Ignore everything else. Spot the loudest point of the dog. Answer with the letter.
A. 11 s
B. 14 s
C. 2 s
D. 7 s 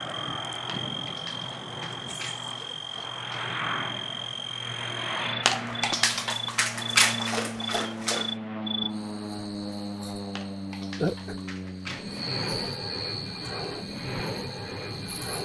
D.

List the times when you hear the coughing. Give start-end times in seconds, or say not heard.
not heard.